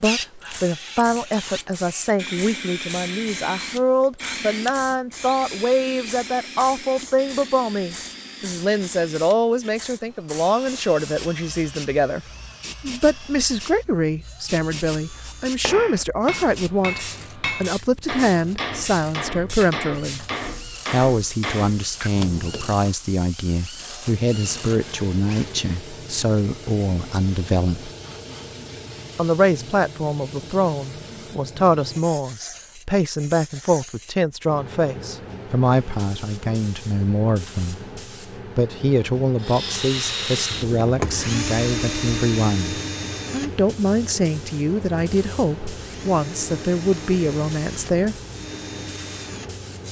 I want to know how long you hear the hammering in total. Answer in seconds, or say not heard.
8 s.